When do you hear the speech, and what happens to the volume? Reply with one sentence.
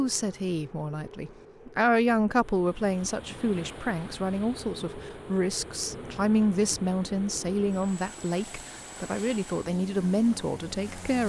The speech can be heard from 0.0 to 11.2 s, at a steady volume.